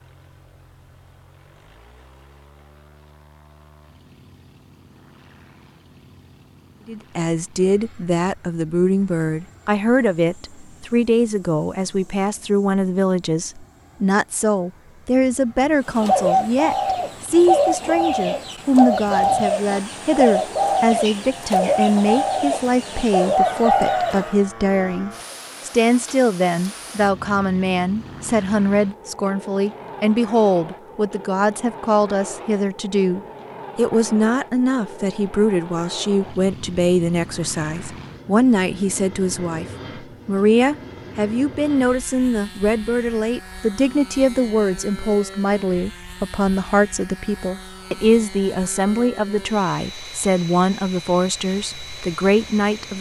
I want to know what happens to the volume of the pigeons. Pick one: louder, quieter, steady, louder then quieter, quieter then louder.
steady.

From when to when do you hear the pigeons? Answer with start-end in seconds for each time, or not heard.
15.9-24.4.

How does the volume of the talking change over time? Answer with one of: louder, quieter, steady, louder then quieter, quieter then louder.
steady.